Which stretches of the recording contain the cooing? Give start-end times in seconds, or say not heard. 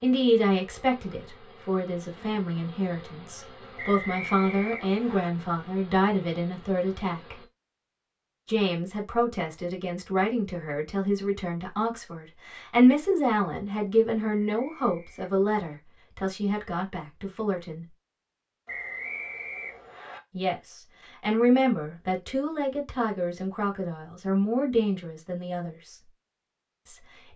not heard.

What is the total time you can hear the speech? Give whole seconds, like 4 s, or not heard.
23 s.